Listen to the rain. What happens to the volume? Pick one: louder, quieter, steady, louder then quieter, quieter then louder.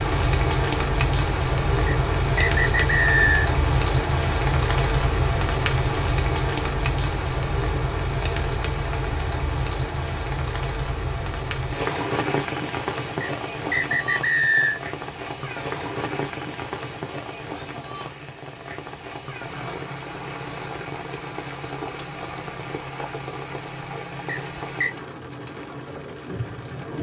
quieter.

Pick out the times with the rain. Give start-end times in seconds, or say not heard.
0.0-26.9.